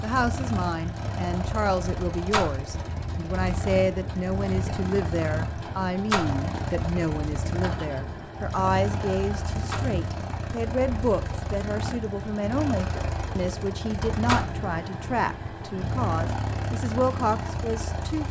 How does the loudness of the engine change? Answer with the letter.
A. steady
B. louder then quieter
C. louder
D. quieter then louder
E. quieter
A.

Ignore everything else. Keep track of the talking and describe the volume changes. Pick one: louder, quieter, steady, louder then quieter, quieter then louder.
steady.